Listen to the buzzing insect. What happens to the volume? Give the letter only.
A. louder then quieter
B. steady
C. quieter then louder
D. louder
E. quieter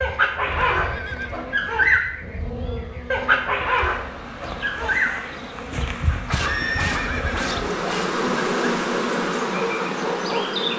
D.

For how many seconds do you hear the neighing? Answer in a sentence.
The neighing can be heard for 2 seconds in total.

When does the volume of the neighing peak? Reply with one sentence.
The volume of the neighing peaks at 7 seconds.